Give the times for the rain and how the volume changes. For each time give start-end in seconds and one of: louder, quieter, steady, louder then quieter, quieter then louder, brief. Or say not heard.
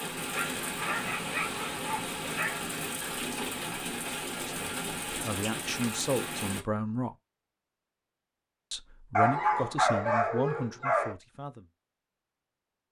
0.0-6.7 steady.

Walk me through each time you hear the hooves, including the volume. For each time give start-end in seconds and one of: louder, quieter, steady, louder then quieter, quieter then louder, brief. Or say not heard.
not heard.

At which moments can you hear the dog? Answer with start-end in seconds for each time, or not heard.
0.3-2.8, 9.2-11.2.